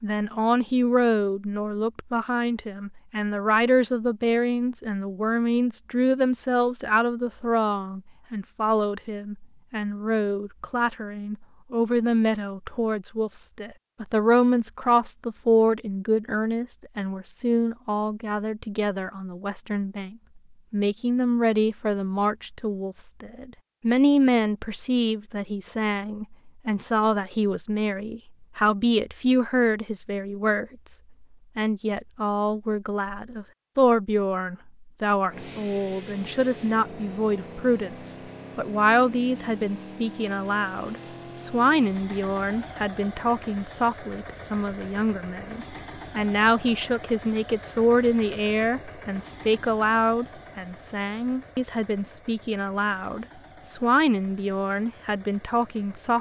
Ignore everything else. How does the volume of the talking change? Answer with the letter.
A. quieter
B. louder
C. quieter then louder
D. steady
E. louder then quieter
D.